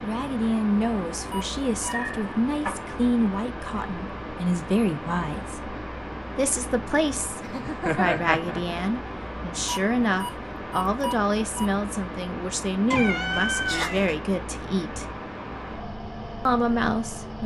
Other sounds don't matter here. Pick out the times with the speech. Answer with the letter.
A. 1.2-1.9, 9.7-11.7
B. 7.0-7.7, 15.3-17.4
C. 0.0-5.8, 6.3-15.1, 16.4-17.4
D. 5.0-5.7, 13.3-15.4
C.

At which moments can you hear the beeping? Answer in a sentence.
You can hear the beeping from 1.2 to 1.9 s and from 9.7 to 11.7 s.